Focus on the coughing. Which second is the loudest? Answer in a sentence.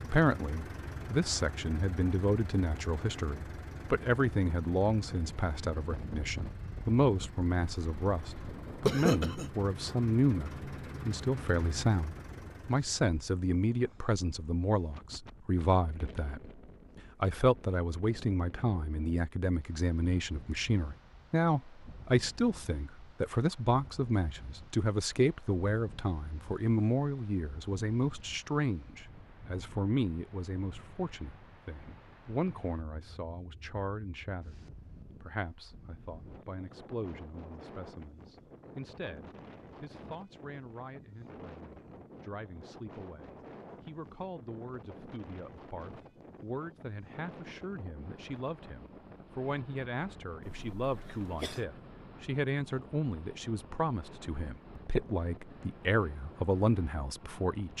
The loudest moment of the coughing is at 9 seconds.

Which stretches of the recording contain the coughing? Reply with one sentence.
You can hear the coughing from 8.8 to 9.5 s and from 50.5 to 51.6 s.